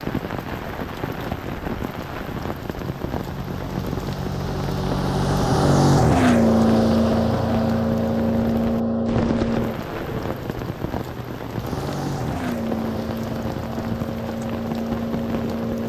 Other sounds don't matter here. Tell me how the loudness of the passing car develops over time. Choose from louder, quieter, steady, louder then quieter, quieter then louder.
louder then quieter.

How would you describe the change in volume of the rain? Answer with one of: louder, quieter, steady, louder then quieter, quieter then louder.
steady.